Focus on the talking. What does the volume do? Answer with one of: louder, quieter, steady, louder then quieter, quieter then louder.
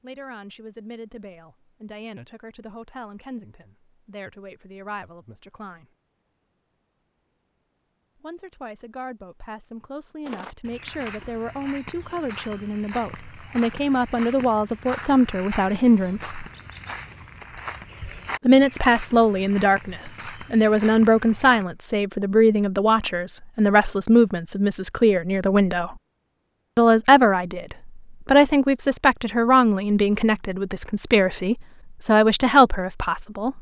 louder.